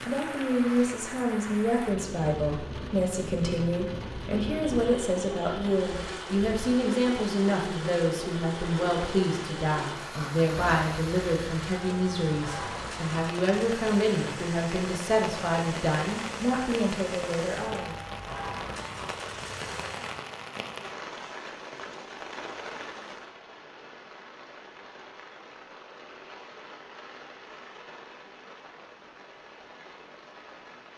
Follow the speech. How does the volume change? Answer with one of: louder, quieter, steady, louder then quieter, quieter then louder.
steady.